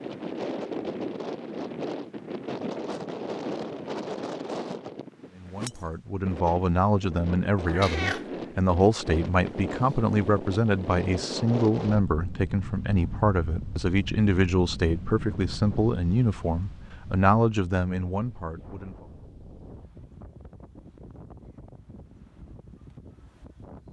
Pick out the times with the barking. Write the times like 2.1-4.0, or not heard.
not heard.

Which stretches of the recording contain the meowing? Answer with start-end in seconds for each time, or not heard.
7.7-8.2.